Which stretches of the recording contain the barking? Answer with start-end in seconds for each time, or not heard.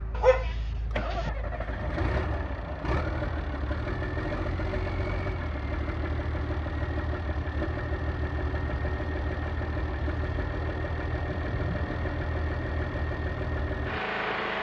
0.1-1.3.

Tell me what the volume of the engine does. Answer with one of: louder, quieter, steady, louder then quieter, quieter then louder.
steady.